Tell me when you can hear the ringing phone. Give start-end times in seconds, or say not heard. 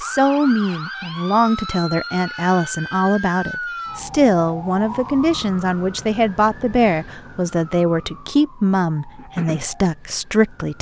not heard.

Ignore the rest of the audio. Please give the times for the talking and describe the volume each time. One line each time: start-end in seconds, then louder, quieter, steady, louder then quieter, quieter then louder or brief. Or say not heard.
0.0-10.7 steady.